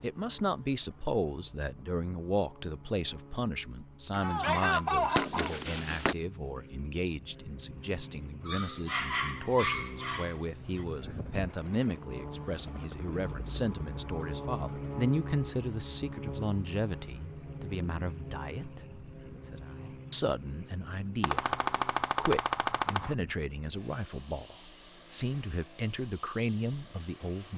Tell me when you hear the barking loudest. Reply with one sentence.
The loudest moment of the barking is at 9 seconds.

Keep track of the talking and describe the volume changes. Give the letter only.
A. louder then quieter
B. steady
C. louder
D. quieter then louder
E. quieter
B.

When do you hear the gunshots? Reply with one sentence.
The gunshots can be heard from 4.1 to 6.2 s and from 21.2 to 23.1 s.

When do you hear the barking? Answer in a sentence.
The barking can be heard from 8.4 to 10.8 s.